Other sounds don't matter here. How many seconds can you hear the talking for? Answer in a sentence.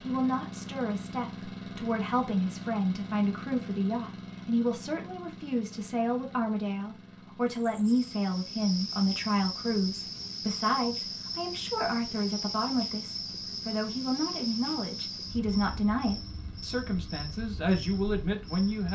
The talking can be heard for 19 seconds in total.